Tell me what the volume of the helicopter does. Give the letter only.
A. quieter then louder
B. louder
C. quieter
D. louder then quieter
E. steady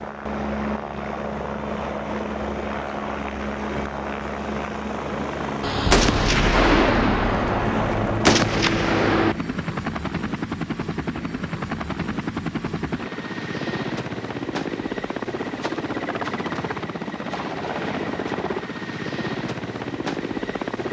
E.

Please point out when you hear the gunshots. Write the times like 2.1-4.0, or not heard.
5.6-9.3.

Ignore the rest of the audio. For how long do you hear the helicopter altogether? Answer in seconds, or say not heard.
21 s.